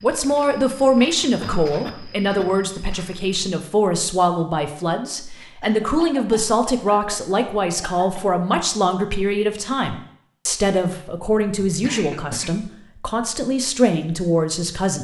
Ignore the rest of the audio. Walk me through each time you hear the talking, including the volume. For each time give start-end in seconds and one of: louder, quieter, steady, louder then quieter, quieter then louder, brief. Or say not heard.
0.0-15.0 steady.